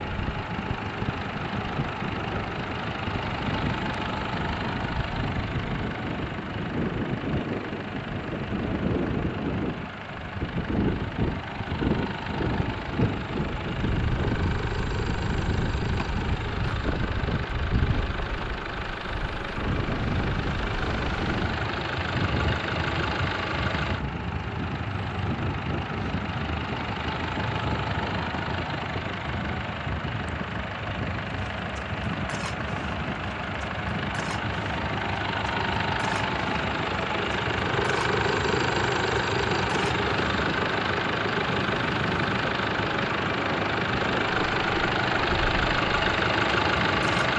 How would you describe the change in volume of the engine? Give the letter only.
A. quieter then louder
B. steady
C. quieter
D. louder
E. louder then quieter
D.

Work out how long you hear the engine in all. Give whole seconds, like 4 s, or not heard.
47 s.